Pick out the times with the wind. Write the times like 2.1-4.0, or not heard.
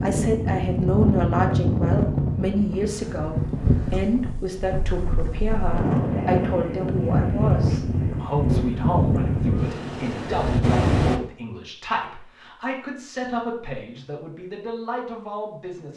0.0-11.2.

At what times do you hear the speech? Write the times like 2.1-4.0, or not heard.
0.0-15.9.